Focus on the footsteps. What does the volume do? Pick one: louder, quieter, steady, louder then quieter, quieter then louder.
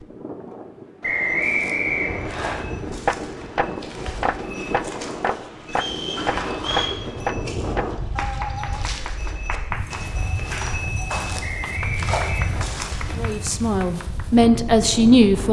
louder.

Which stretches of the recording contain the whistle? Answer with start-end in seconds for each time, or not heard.
1.0-2.5, 5.7-6.9, 11.4-12.8.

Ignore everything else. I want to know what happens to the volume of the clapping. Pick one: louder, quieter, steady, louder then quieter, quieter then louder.
quieter.